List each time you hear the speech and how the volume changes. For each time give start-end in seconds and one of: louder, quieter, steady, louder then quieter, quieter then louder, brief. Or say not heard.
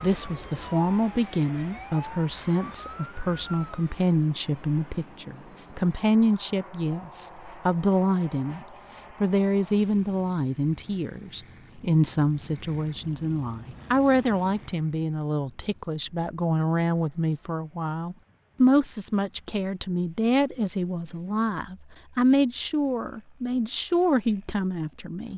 0.0-25.3 steady.